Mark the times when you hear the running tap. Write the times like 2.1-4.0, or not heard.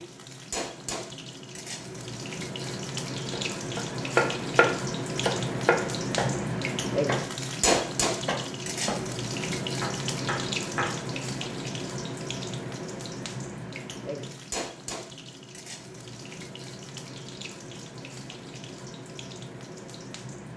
0.0-20.5.